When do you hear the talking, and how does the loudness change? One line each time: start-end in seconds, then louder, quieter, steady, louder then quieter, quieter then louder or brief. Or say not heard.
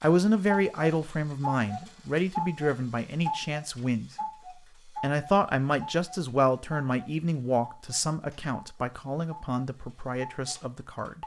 0.0-4.1 quieter
4.8-11.2 quieter.